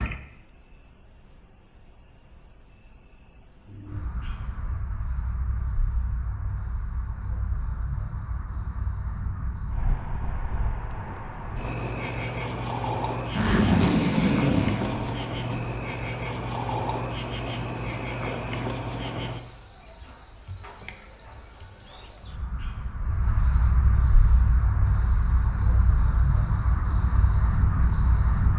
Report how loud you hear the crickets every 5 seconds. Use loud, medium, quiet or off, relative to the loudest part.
quiet, quiet, medium, medium, medium, loud.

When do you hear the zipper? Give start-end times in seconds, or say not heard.
13.3-15.6.